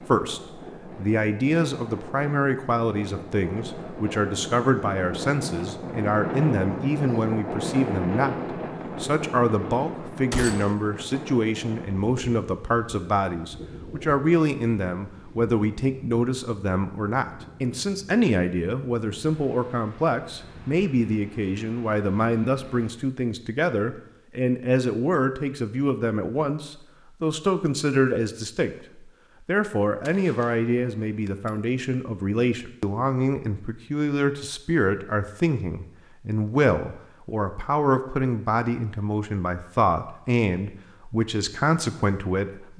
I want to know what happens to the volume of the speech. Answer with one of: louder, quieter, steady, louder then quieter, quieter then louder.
steady.